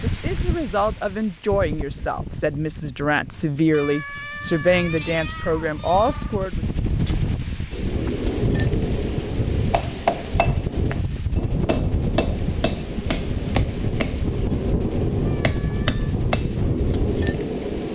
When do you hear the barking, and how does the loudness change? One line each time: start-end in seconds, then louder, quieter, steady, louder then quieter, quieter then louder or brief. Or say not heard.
not heard.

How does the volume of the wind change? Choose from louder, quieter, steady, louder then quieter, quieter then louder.
louder.